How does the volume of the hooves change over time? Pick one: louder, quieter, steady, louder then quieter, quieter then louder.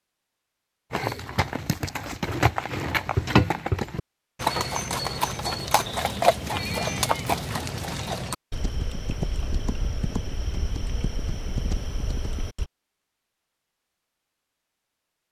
quieter.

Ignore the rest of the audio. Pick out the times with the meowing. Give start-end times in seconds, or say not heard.
6.5-8.1.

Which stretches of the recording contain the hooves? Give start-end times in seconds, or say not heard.
0.9-12.7.